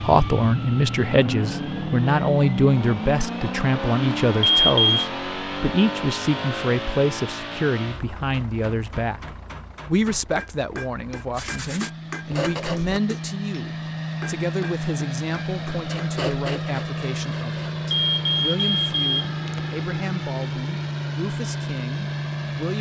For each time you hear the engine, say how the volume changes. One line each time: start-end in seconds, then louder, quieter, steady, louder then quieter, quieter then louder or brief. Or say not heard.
0.0-22.7 quieter then louder.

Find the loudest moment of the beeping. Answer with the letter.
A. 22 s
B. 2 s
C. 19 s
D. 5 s
D.